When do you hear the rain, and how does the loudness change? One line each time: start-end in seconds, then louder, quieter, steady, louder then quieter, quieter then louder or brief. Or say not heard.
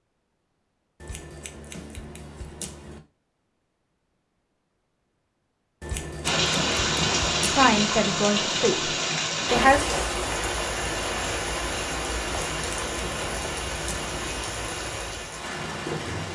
6.2-16.2 quieter.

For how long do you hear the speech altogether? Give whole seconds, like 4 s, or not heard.
2 s.